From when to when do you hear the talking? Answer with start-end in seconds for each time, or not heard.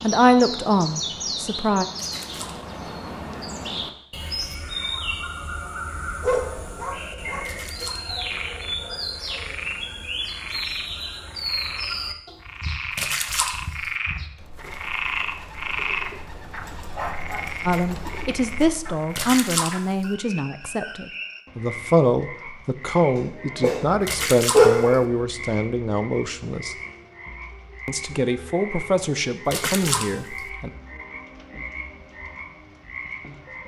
0.0-1.9, 17.6-26.8, 27.9-30.7.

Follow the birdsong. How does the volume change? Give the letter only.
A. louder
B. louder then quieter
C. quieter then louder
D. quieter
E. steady
D.